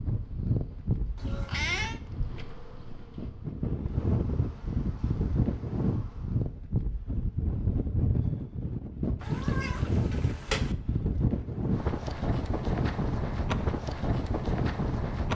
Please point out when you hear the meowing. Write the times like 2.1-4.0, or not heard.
1.1-2.0, 9.2-10.8.